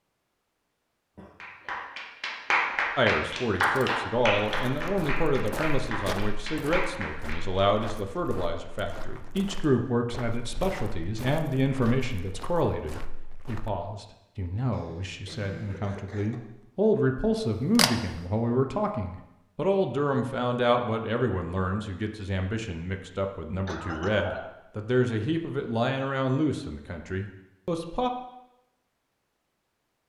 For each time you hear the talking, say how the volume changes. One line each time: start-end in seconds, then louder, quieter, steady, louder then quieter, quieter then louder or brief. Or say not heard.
3.0-28.1 steady.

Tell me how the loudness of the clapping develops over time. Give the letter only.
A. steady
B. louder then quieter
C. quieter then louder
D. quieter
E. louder
D.